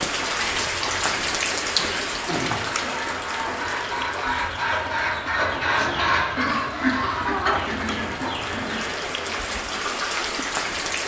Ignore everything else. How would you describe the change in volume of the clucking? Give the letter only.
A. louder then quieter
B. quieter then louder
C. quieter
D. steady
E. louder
A.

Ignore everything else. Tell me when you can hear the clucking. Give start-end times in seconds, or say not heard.
0.2-10.2.